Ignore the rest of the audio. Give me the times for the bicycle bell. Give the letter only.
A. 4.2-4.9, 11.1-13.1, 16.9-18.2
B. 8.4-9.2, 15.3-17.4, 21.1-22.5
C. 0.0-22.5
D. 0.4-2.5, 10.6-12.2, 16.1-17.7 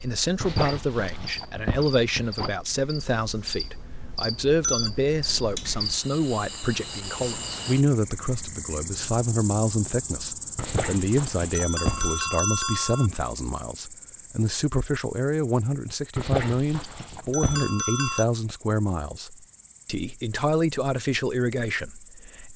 A.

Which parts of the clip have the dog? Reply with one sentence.
You can hear the dog from 0.4 to 2.5 s, from 10.6 to 12.2 s and from 16.1 to 17.7 s.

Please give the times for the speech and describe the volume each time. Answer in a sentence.
You can hear the speech from 0.0 to 22.5 s, at a steady volume.